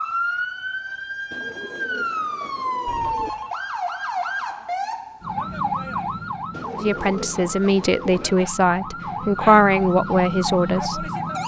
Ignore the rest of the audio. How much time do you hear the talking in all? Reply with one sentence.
The talking can be heard for 4 seconds in total.